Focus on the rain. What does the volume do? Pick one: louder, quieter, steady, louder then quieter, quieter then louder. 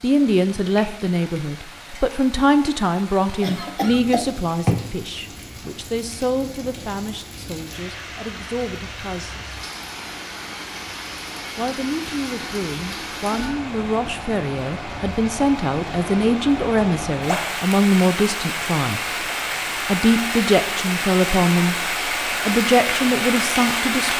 louder.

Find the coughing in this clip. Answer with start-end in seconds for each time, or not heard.
3.4-4.9.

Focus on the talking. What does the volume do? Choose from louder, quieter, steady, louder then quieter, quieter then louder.
quieter then louder.